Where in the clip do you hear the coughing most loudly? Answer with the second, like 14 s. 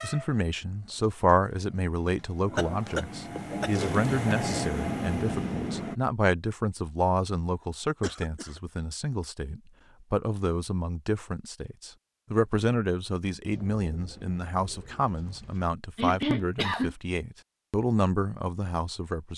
16 s.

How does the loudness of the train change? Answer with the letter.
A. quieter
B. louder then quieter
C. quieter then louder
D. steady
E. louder
E.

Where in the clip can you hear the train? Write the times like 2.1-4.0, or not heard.
0.0-6.0.